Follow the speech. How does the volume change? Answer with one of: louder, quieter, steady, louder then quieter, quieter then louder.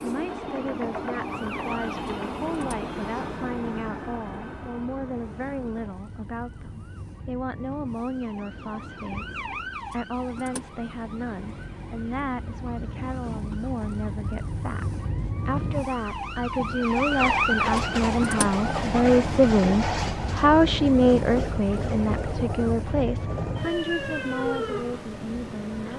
louder.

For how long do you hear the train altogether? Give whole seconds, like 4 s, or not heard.
19 s.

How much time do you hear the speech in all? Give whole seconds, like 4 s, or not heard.
26 s.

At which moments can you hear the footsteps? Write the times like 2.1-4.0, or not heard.
not heard.